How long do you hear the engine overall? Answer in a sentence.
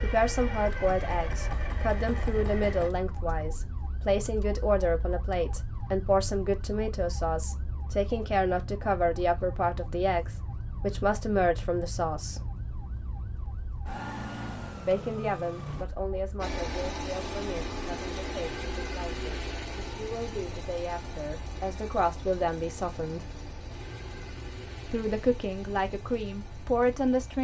You can hear the engine for 14 seconds altogether.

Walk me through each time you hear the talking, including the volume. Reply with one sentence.
The talking can be heard from 0.0 to 12.4 s, at a steady volume; from 14.8 to 23.2 s, getting quieter then louder; and briefly from 24.9 to 27.3 s.